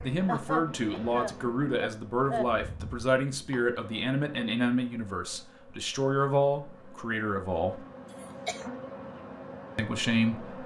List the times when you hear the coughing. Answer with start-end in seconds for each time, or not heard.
0.2-2.5, 8.2-8.6.